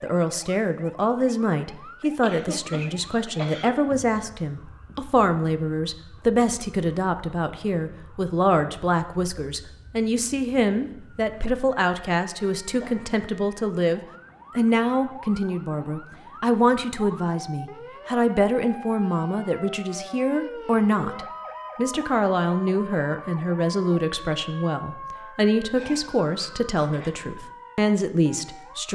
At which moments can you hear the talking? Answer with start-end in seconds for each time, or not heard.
0.0-28.9.